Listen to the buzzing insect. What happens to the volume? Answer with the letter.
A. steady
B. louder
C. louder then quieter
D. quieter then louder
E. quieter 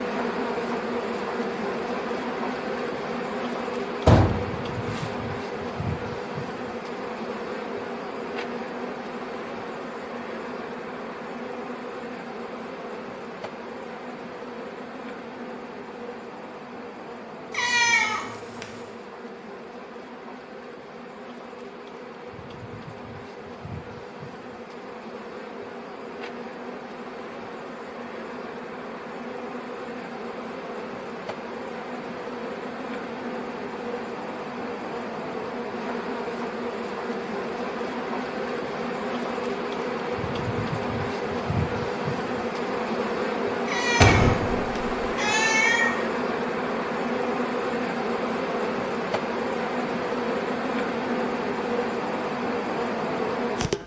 D.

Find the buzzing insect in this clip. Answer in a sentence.
You can hear the buzzing insect from 0.0 to 53.8 s.